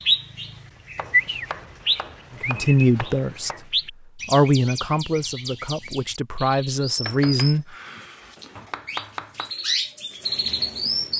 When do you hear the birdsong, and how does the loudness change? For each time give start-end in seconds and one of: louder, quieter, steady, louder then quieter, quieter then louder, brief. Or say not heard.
0.0-11.1 quieter then louder.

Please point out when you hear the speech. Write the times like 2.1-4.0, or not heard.
2.5-3.5, 4.2-7.7.